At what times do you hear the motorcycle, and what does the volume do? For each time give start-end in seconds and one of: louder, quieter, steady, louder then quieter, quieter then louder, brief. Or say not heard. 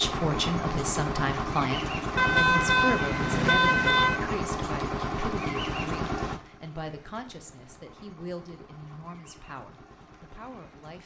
0.0-11.0 quieter.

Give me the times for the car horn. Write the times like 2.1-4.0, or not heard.
2.1-4.2.